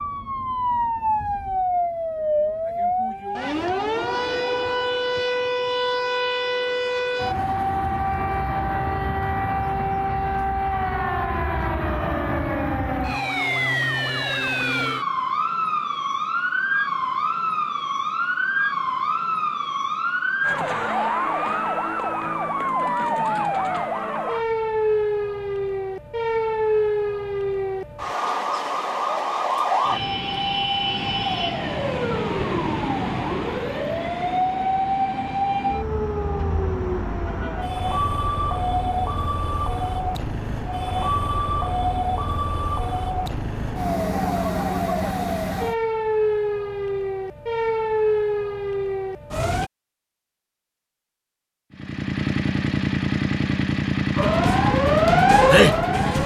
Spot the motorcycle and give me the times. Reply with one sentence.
You can hear the motorcycle from 51.7 to 56.2 s.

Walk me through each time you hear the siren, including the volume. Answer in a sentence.
You can hear the siren from 0.0 to 49.7 s, at a steady volume; and briefly from 54.1 to 56.2 s.